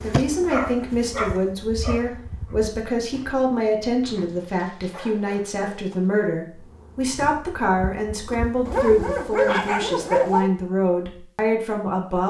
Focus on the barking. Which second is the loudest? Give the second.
10 s.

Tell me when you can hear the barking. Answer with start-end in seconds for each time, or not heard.
0.5-2.1, 4.2-6.3, 8.7-10.5.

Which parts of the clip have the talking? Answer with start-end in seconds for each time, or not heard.
0.0-12.2.